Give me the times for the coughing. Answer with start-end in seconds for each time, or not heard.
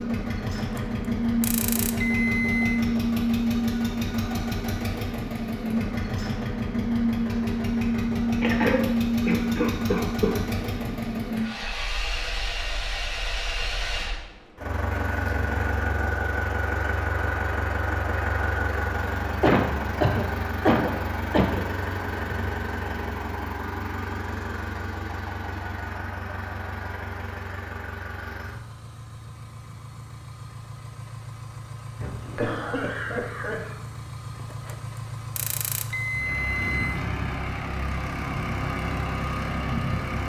8.4-10.3, 19.4-21.6, 32.0-33.8.